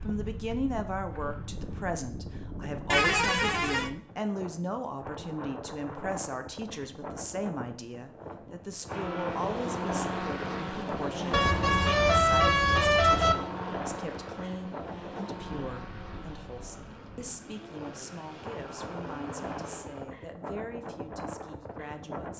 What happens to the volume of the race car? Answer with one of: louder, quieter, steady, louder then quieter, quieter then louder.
quieter.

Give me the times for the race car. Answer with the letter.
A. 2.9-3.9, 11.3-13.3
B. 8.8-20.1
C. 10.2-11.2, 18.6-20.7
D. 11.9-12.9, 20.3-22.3
B.